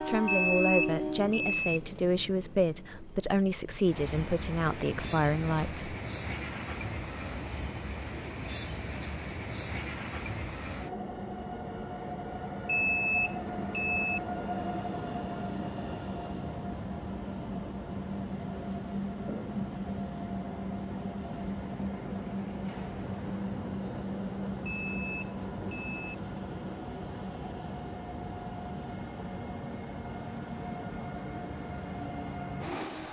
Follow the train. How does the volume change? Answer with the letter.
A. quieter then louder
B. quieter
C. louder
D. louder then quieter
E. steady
E.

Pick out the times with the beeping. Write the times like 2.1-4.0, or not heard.
0.2-1.8, 12.7-14.2, 24.6-26.1.